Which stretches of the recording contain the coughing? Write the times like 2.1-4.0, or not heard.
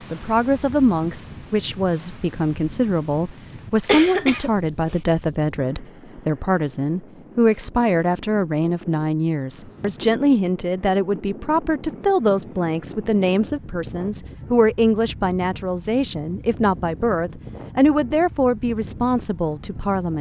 3.9-5.0.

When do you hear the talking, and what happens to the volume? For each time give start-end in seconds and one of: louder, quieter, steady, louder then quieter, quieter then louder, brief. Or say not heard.
0.1-20.1 steady.